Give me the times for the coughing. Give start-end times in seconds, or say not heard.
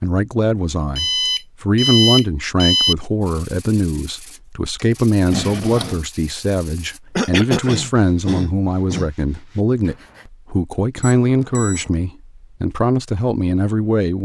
7.2-9.1.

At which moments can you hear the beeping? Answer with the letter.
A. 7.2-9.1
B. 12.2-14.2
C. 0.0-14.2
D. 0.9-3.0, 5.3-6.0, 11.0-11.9
D.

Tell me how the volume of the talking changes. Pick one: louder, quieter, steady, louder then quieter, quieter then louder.
steady.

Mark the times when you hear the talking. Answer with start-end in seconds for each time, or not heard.
0.0-14.2.